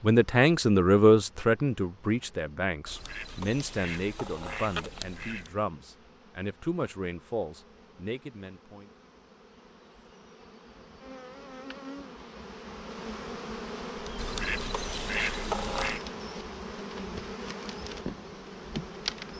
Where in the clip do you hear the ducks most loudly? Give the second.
15 s.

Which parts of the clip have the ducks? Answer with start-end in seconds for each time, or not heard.
2.9-5.5, 14.2-16.0.